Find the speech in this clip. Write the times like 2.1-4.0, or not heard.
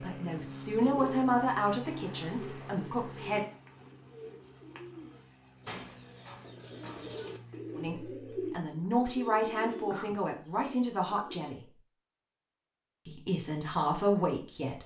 0.0-3.5, 7.8-11.6, 13.1-14.8.